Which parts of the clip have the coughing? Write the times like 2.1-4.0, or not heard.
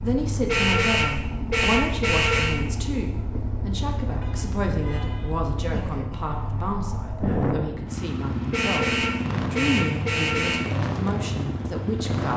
5.7-6.3.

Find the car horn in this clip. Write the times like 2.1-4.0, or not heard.
0.5-2.5, 4.2-5.5, 8.5-10.6.